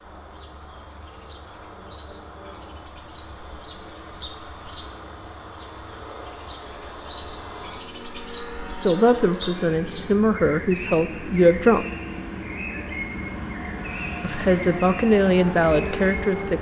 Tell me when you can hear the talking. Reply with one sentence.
The talking can be heard from 8.7 to 11.8 s and from 14.2 to 16.5 s.